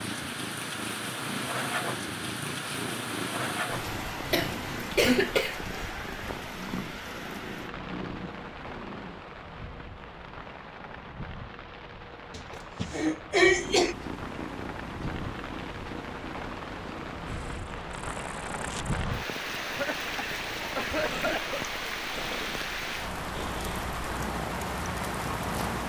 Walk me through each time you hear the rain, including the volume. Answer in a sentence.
You can hear the rain from 0.0 to 25.8 s, getting quieter then louder.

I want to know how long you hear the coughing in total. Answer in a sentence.
The coughing can be heard for 5 seconds in total.